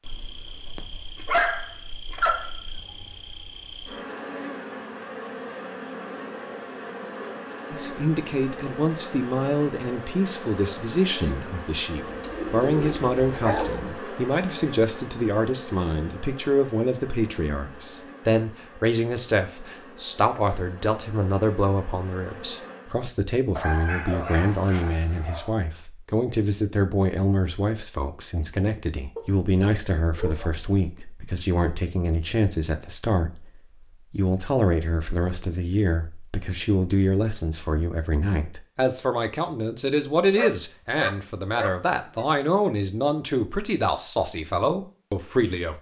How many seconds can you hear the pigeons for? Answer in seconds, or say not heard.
2 s.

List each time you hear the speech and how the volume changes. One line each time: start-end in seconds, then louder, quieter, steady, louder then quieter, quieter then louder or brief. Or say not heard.
7.7-45.7 steady.